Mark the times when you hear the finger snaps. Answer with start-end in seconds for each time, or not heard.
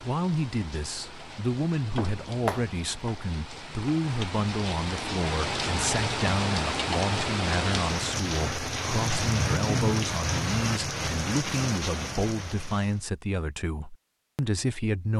1.9-2.8.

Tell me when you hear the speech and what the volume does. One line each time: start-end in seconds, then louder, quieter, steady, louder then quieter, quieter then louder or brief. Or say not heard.
0.0-15.1 steady.